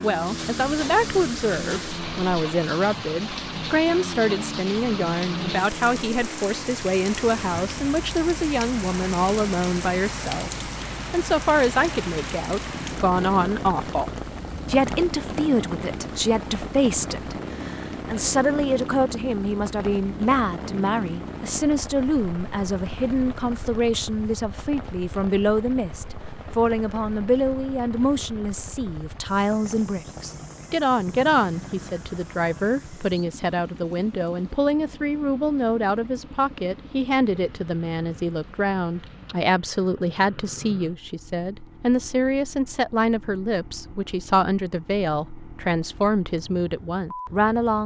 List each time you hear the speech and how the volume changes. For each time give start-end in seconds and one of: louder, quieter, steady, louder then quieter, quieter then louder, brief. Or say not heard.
0.0-47.8 steady.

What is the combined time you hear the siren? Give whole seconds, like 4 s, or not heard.
not heard.